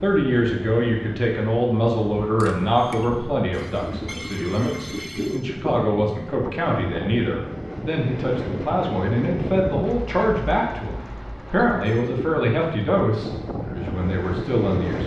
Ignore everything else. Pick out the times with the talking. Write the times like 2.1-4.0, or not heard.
0.0-15.0.